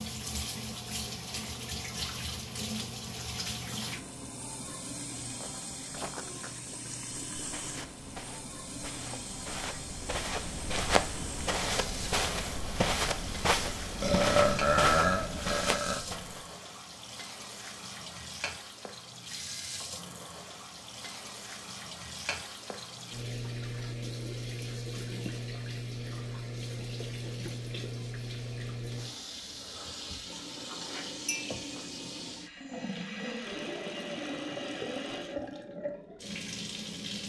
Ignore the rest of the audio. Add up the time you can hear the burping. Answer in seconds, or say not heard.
2 s.